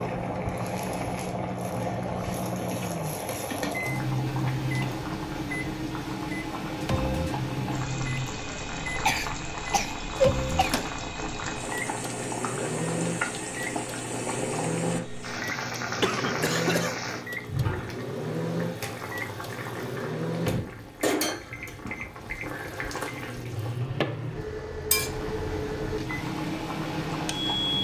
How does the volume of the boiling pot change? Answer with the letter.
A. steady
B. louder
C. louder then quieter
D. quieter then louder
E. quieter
A.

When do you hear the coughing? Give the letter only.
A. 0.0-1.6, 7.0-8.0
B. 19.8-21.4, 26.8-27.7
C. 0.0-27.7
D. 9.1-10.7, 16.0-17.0
D.